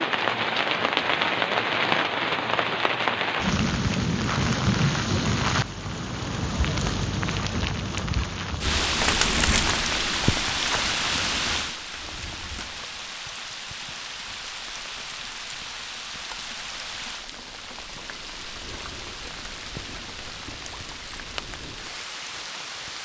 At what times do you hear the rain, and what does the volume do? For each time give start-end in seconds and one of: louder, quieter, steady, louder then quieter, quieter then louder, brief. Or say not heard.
0.0-23.0 quieter.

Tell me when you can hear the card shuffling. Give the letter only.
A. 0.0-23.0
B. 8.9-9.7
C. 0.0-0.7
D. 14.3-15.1
B.